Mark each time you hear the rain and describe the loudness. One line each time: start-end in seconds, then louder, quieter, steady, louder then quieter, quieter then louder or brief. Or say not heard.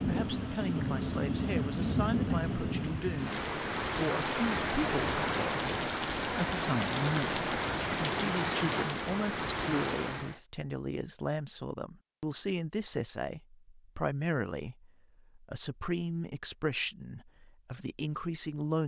0.0-10.4 steady.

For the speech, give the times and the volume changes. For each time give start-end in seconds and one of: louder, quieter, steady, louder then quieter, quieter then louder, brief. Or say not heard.
0.1-18.8 steady.